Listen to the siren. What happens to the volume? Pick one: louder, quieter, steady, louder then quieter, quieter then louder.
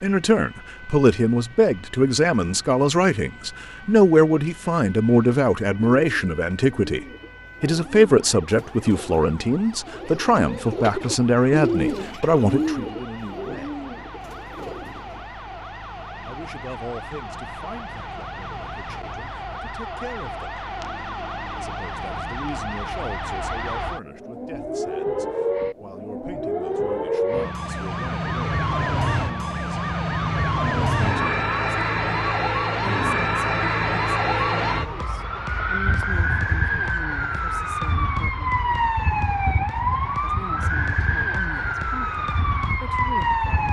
louder.